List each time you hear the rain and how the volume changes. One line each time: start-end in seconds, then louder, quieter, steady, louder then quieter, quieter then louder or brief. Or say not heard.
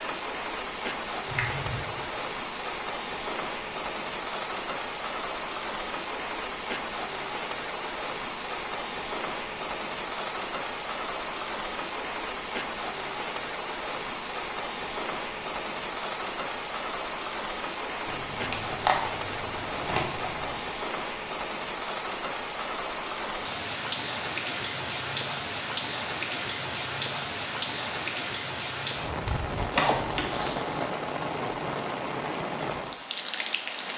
0.0-33.9 steady.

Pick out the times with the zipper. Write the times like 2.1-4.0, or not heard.
29.7-30.9.